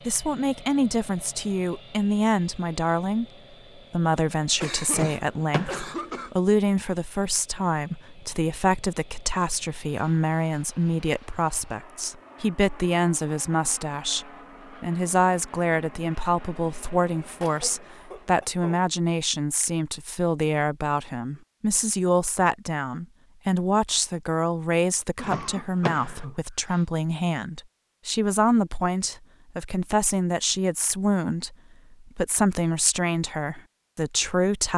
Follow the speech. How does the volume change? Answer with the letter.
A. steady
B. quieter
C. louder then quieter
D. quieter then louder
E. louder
A.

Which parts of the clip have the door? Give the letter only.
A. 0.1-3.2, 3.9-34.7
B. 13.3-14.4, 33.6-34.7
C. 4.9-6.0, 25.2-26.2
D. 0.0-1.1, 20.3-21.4
C.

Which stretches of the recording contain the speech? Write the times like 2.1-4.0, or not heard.
0.1-3.2, 3.9-34.7.